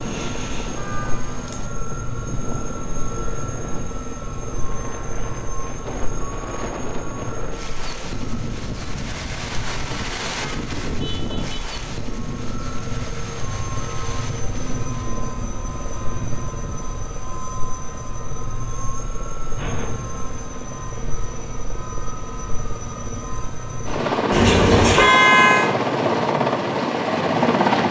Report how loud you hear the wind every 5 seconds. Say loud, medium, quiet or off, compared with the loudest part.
loud, loud, loud, medium, off, off.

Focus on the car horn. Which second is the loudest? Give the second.
25 s.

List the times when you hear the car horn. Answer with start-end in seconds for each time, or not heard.
0.7-1.4, 10.2-11.8, 24.3-25.7.